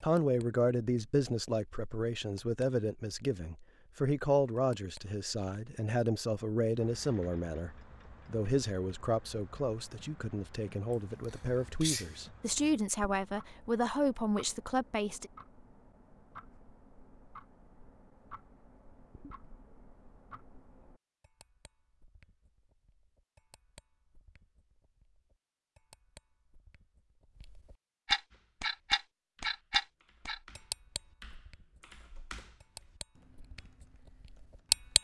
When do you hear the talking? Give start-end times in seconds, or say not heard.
0.0-15.3.